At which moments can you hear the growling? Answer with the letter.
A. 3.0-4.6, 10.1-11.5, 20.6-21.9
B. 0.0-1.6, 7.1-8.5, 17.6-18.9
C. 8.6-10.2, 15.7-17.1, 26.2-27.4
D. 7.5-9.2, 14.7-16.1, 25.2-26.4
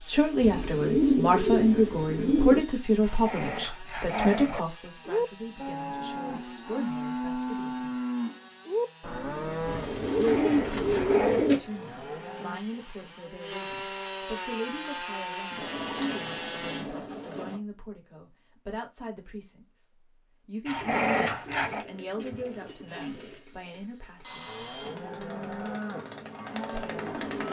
A.